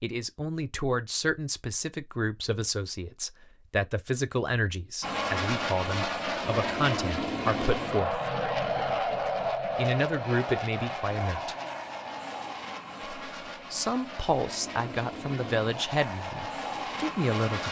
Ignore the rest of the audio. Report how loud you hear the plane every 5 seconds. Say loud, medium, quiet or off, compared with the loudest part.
off, loud, medium, medium.